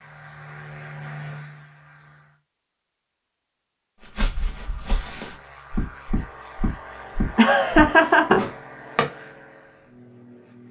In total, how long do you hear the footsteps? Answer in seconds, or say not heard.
5 s.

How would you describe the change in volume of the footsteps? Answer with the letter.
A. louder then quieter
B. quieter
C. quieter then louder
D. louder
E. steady
D.